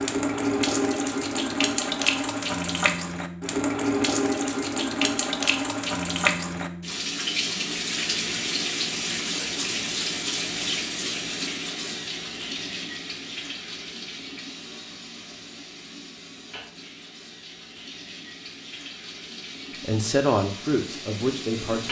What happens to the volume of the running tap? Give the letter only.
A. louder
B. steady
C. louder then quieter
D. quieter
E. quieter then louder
D.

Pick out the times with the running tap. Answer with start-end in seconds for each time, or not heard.
0.0-21.8.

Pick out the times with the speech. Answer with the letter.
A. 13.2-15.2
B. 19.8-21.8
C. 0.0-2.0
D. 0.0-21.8
B.